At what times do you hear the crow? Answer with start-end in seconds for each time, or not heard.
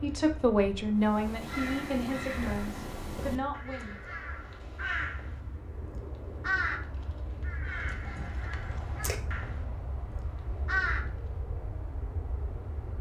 1.0-11.1.